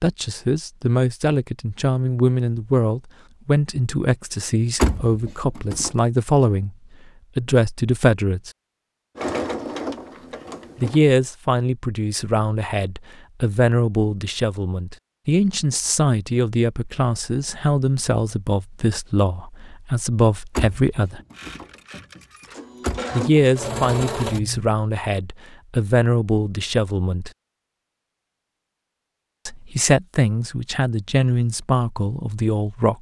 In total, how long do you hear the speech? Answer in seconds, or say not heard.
26 s.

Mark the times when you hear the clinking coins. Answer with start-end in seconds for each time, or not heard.
not heard.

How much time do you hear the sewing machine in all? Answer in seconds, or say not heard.
5 s.